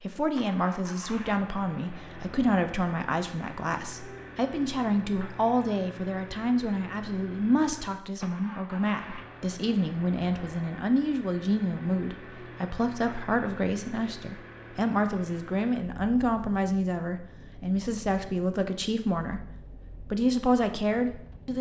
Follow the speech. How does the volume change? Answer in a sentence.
The volume of the speech stays about the same.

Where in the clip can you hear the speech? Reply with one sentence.
The speech can be heard from 0.0 to 21.5 s.